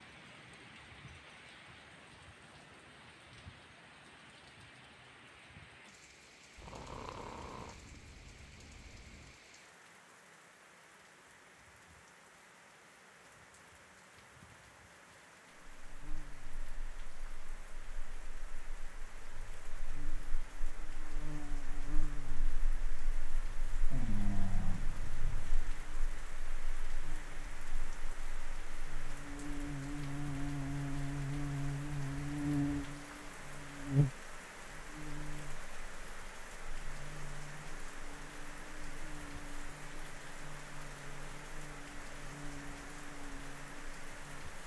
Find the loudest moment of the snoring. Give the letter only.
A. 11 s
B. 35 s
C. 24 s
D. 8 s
C.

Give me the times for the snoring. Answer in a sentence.
The snoring can be heard from 6.5 to 9.3 s and from 23.9 to 25.6 s.